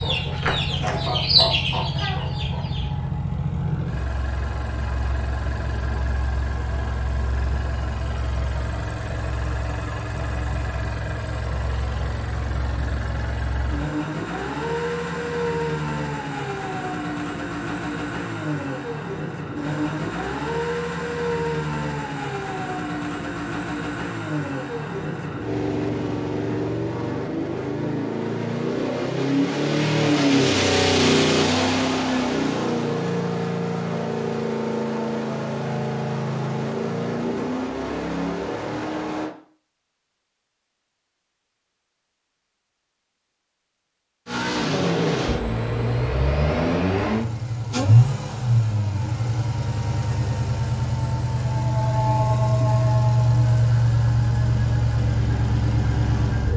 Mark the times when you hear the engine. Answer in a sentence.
You can hear the engine from 0.0 to 39.4 s and from 44.2 to 56.5 s.